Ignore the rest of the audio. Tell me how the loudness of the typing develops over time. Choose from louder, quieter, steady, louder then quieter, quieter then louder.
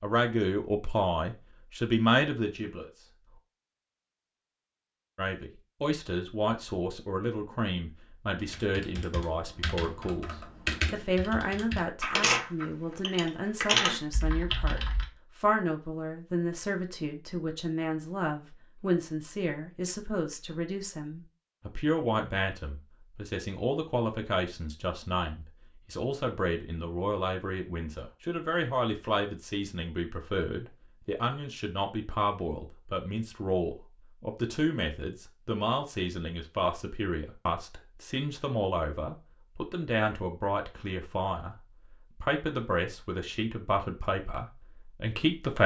louder.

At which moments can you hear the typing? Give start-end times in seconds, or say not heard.
8.3-15.1.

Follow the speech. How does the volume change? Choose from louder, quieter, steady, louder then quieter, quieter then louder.
steady.